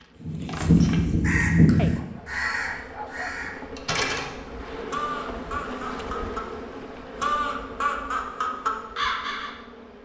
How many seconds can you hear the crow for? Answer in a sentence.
The crow can be heard for 8 seconds in total.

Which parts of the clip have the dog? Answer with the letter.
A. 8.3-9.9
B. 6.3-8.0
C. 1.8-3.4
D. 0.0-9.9
C.